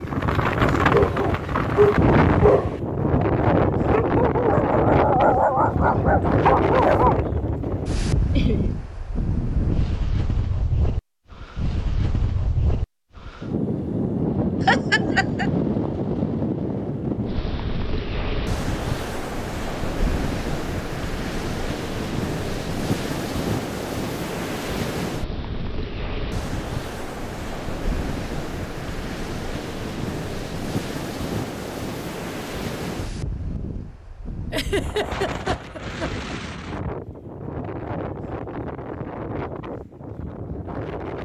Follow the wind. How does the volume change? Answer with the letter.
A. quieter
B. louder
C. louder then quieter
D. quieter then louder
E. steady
A.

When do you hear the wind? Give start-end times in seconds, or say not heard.
0.0-41.2.